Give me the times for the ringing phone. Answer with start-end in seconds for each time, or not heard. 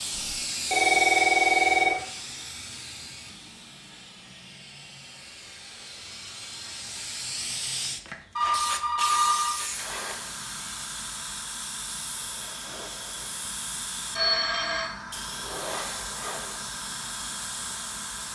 0.1-2.0, 8.3-9.6, 14.2-14.9.